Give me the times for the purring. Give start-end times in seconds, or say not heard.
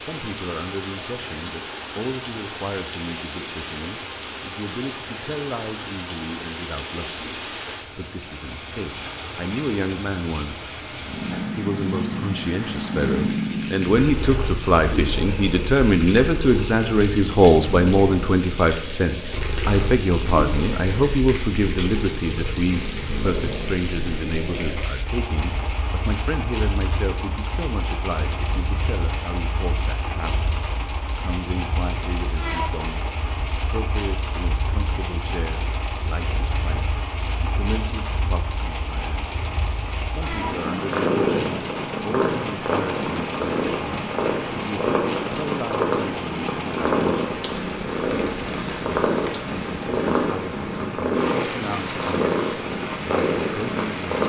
11.0-54.2.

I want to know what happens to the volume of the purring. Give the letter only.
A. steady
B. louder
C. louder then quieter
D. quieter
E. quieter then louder
E.